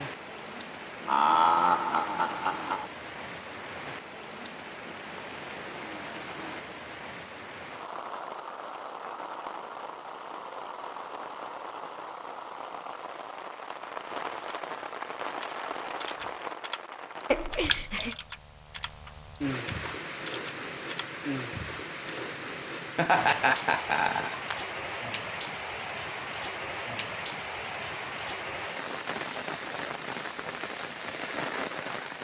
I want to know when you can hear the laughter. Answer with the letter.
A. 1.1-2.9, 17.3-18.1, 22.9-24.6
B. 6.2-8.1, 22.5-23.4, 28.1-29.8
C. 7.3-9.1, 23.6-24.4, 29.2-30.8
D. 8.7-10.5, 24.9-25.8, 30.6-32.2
A.